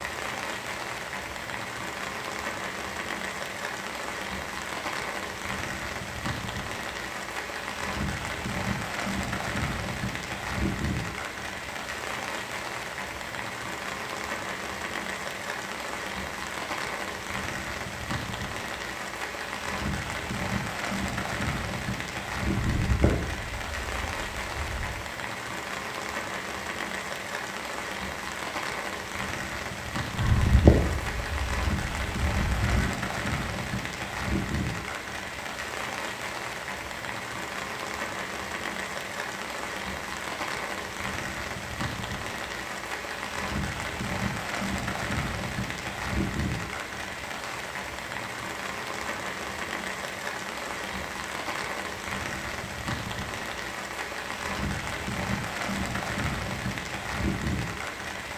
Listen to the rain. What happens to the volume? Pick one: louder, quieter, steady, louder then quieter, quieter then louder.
steady.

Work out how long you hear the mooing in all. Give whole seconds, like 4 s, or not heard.
5 s.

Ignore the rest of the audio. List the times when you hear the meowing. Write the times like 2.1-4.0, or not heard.
not heard.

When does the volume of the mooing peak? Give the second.
31 s.